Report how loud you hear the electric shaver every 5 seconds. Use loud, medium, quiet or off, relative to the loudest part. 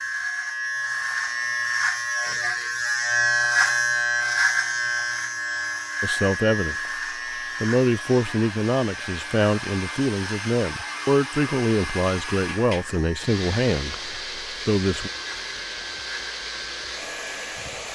loud, medium, quiet, quiet.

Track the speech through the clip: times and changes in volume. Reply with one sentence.
The speech can be heard briefly from 6.0 to 6.8 s; and from 7.6 to 15.1 s, at a steady volume.